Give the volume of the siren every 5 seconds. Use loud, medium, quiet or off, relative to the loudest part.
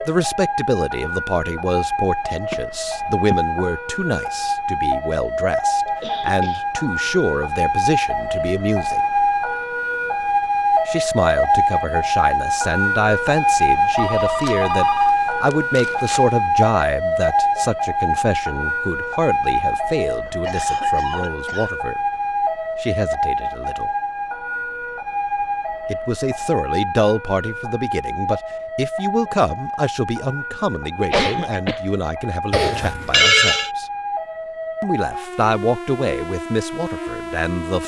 medium, loud, loud, loud, medium, medium, medium, medium.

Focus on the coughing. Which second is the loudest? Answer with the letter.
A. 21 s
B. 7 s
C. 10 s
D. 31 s
D.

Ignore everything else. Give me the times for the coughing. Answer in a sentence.
You can hear the coughing from 6.0 to 6.7 s, from 20.2 to 21.8 s and from 30.9 to 31.8 s.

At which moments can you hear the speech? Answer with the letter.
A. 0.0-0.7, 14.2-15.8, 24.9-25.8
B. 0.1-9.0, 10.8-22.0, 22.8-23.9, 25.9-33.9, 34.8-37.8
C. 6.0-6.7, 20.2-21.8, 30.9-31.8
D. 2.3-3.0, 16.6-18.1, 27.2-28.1
B.